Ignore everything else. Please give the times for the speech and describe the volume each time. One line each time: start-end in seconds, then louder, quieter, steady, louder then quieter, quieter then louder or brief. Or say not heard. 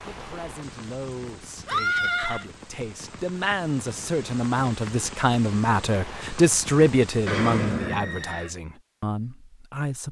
0.1-10.0 louder then quieter.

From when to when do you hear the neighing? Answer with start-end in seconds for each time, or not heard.
1.6-2.5, 7.2-8.5.